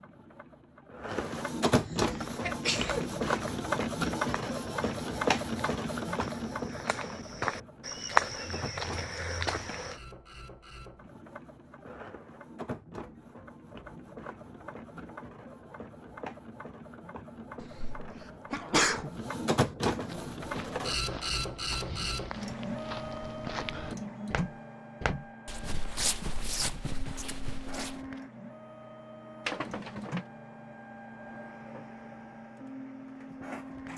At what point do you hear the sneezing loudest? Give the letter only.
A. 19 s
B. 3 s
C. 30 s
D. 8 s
A.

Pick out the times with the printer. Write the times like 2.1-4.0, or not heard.
0.0-33.9.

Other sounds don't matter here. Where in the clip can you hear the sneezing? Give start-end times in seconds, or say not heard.
1.9-3.1, 17.6-19.1, 29.4-30.2.